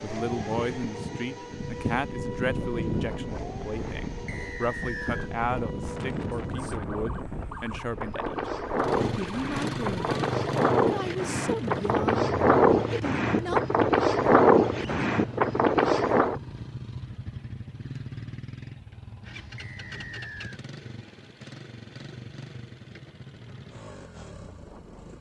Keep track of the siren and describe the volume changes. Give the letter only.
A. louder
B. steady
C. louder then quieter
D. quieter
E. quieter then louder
D.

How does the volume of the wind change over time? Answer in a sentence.
The loudness of the wind goes up.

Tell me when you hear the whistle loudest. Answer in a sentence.
The volume of the whistle peaks at 5 seconds.